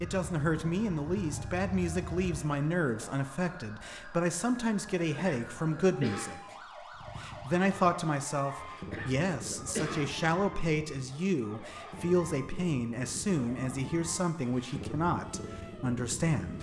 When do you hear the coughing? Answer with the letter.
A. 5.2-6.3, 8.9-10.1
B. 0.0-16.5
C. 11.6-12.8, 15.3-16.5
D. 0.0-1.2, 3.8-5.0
A.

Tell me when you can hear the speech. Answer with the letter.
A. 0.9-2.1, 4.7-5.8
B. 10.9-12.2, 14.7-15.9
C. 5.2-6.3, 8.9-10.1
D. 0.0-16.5
D.